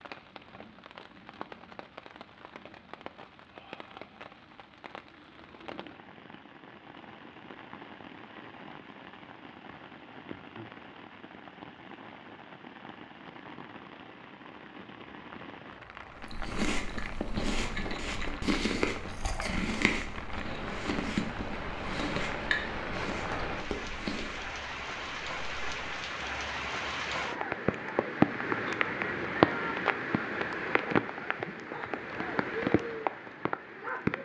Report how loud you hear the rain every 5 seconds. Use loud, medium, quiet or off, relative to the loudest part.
quiet, quiet, quiet, quiet, medium, loud, loud.